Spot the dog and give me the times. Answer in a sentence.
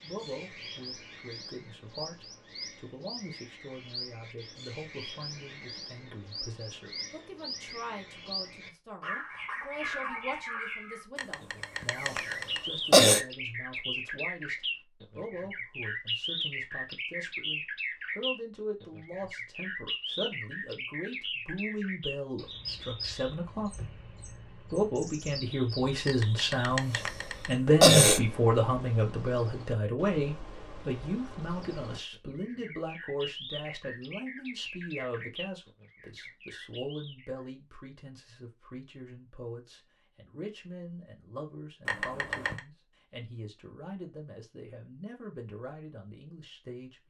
The dog can be heard from 9.0 to 10.7 s.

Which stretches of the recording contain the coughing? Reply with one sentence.
The coughing can be heard from 11.2 to 13.2 s, from 26.1 to 28.2 s and from 41.9 to 42.6 s.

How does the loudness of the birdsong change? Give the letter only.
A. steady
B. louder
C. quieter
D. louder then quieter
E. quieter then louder
D.